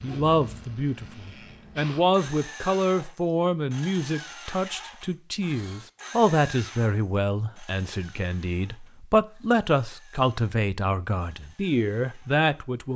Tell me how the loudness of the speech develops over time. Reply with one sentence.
The loudness of the speech stays about the same.